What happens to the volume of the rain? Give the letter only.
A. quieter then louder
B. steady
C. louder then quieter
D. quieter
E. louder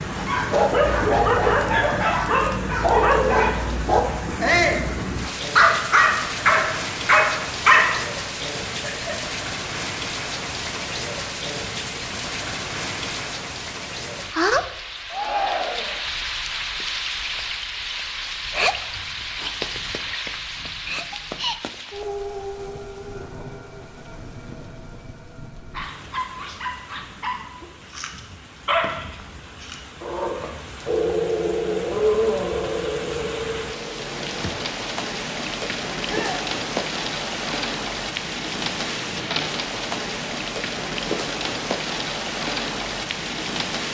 A.